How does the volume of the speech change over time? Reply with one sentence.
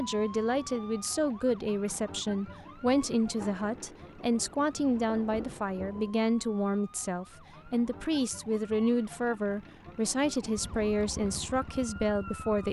The volume of the speech stays about the same.